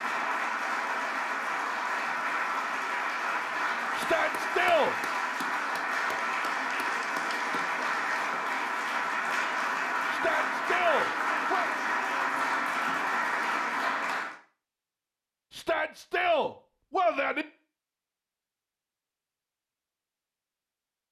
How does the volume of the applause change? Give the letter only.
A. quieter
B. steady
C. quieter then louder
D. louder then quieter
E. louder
B.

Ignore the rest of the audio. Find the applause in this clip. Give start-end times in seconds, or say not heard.
0.0-14.3.